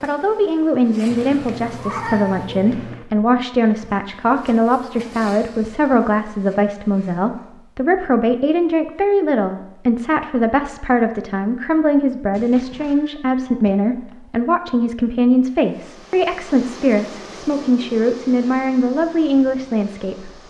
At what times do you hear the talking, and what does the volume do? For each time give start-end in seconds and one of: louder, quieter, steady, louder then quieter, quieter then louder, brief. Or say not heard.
0.0-20.3 steady.